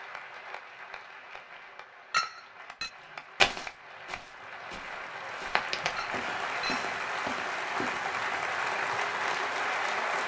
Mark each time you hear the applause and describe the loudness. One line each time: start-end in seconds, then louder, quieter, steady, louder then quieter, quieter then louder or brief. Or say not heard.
0.0-10.2 louder.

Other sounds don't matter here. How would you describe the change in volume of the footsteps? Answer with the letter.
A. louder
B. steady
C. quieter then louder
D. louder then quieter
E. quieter
D.